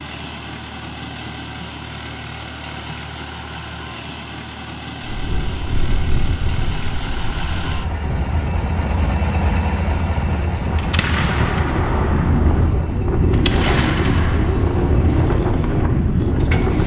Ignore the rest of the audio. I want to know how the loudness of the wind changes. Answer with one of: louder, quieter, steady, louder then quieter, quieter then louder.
louder.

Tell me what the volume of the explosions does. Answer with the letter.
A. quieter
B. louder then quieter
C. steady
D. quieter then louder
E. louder
D.